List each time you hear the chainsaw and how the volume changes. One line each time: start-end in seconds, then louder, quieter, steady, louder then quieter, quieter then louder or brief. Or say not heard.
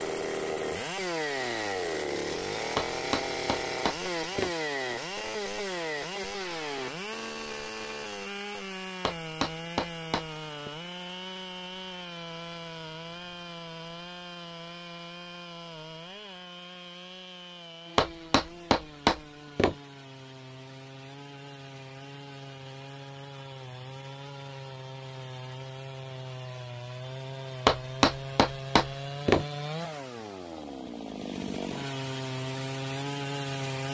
0.0-33.8 quieter then louder.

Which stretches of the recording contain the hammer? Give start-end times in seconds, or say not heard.
2.8-4.5, 9.1-10.7, 17.9-19.8, 27.6-29.4.